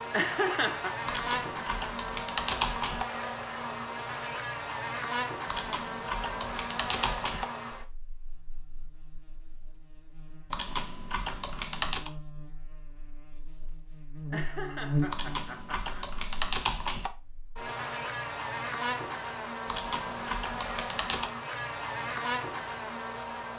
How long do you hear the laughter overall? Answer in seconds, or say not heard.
3 s.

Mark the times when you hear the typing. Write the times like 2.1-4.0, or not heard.
1.1-3.0, 5.5-7.5, 10.5-12.1, 15.1-17.1, 19.6-21.3.